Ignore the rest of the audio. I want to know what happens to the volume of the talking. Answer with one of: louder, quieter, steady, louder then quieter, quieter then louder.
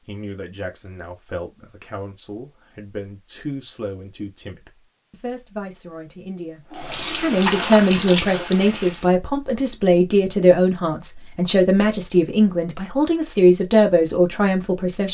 louder.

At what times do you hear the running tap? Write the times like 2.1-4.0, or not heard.
6.7-9.1.